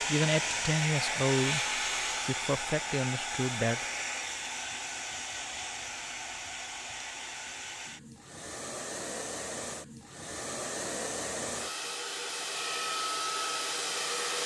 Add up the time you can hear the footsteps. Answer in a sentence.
The footsteps can't be heard in this clip.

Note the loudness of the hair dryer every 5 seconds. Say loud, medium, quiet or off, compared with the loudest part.
loud, medium, loud.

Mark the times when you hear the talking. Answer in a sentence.
The talking can be heard from 0.1 to 3.9 s.